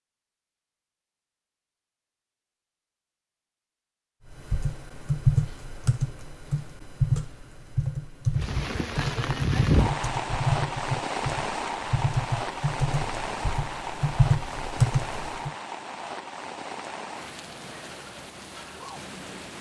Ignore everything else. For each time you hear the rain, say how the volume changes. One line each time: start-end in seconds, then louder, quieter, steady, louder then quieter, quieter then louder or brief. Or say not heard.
8.3-19.5 quieter.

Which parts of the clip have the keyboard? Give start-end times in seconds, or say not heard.
4.3-15.5.